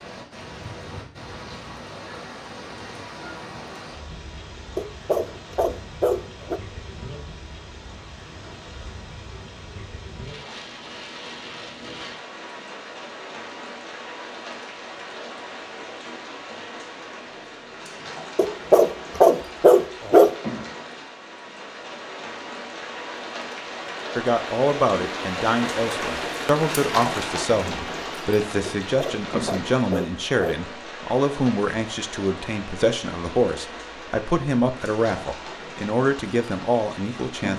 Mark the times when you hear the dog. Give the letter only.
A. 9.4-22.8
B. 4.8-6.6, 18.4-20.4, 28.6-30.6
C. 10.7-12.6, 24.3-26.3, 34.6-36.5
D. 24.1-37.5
B.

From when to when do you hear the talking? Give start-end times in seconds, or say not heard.
24.1-37.5.